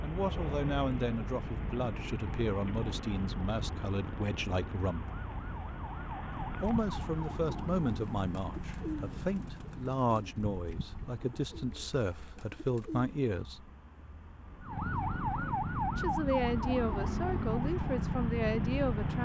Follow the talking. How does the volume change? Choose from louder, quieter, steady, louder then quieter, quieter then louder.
steady.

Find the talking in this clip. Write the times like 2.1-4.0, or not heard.
0.0-5.1, 6.6-13.7, 15.9-19.2.